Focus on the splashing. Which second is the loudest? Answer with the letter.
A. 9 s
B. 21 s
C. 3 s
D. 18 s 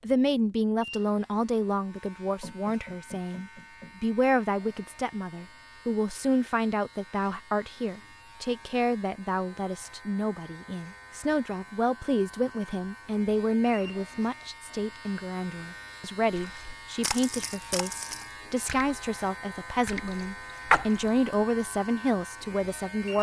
B.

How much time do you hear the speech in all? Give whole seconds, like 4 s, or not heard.
23 s.